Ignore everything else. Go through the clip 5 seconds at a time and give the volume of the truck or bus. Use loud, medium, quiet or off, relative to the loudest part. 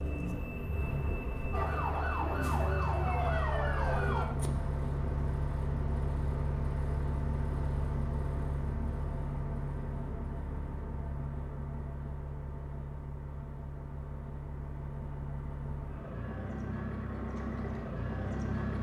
loud, loud, medium, loud.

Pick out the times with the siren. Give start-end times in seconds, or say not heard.
1.5-4.2.